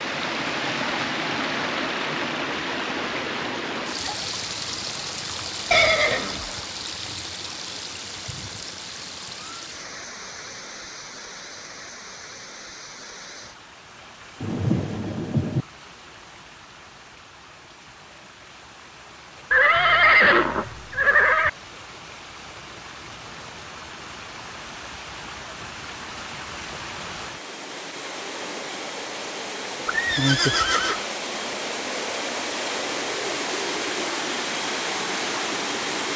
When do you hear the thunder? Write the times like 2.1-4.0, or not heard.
14.4-15.7.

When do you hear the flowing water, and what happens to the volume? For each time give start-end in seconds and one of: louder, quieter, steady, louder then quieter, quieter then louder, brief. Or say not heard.
0.0-36.1 quieter then louder.